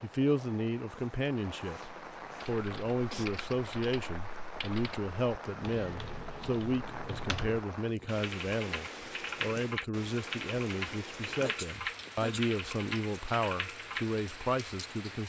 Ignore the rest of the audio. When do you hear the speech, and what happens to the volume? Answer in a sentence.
You can hear the speech from 0.0 to 15.2 s, at a steady volume.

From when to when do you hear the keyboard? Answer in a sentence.
The keyboard can be heard from 2.4 to 14.1 s.